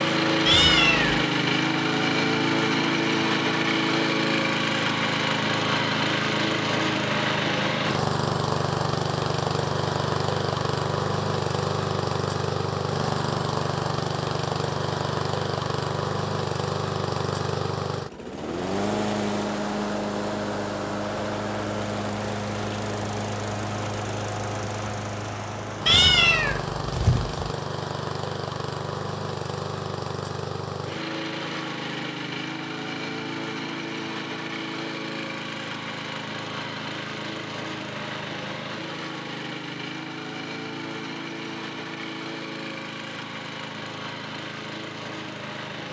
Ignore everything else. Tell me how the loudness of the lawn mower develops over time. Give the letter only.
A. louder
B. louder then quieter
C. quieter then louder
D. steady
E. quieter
E.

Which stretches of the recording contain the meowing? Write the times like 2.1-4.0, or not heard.
0.5-1.2, 25.9-27.4.